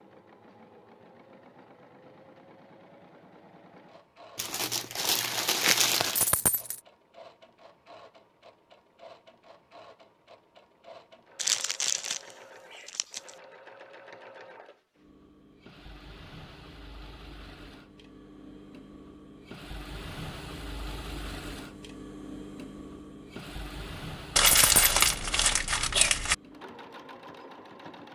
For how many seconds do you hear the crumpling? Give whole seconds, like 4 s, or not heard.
6 s.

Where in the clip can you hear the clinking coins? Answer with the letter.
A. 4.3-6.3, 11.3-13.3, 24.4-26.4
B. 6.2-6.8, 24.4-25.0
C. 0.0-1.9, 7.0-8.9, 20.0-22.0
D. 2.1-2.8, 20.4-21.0
B.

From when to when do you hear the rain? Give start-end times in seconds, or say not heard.
not heard.